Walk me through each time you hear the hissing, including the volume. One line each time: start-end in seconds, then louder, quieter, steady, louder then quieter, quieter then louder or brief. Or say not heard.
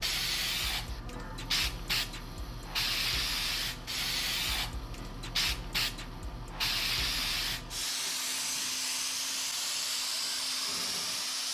0.0-11.4 steady.